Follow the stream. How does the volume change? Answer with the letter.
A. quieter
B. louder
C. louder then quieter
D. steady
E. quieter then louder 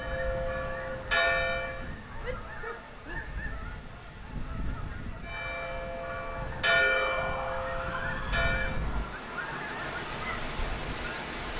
B.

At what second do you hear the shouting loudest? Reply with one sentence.
The volume of the shouting peaks at 7 seconds.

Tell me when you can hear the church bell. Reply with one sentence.
You can hear the church bell from 0.0 to 1.8 s and from 5.2 to 8.8 s.